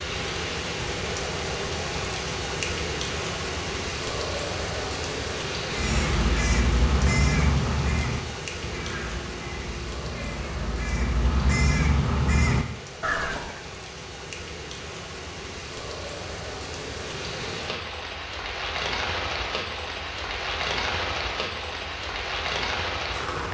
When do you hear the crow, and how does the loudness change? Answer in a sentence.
You can hear the crow from 5.7 to 13.6 s, getting quieter then louder.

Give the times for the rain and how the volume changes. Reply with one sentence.
The rain can be heard from 0.0 to 23.4 s, getting quieter then louder.